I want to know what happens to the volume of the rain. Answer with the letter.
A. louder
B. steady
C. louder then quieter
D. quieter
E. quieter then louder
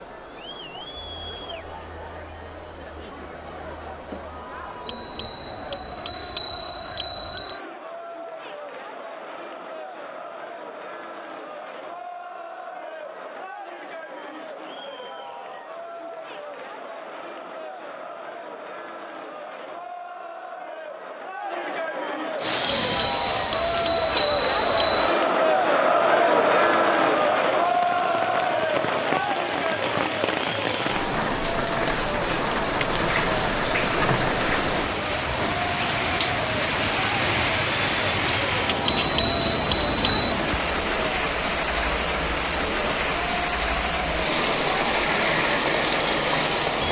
A.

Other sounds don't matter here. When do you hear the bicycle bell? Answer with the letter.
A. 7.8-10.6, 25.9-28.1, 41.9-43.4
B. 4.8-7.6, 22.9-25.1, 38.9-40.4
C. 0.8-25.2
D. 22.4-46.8
B.